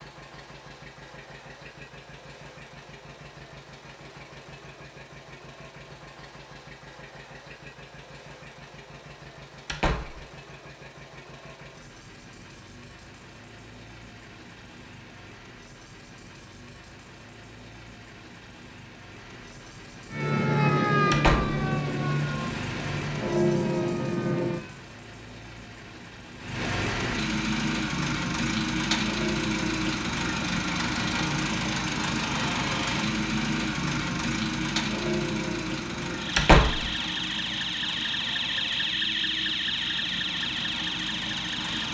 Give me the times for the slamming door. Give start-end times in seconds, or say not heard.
9.7-10.2, 21.1-21.6, 36.4-36.9.